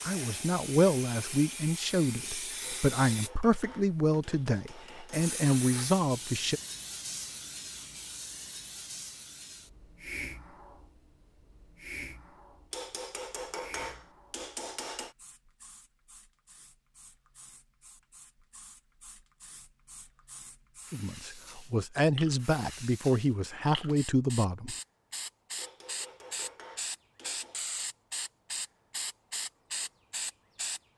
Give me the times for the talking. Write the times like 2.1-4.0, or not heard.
0.0-6.6, 20.9-24.8.